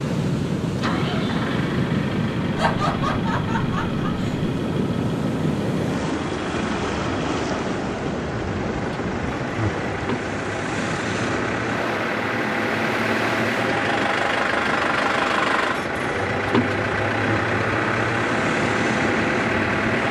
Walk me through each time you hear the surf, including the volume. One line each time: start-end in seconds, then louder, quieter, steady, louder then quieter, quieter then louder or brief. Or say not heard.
0.0-19.9 quieter.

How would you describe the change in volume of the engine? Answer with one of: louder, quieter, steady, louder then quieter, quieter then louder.
louder.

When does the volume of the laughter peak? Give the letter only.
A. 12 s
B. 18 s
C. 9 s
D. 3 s
D.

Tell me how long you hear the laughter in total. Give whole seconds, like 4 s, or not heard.
2 s.